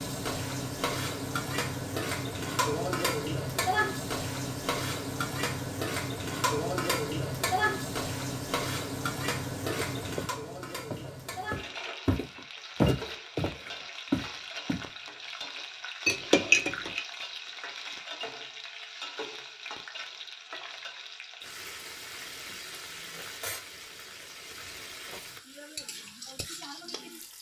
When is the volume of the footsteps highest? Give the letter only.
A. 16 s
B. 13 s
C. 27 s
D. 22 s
B.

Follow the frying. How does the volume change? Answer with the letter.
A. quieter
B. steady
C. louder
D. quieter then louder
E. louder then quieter
A.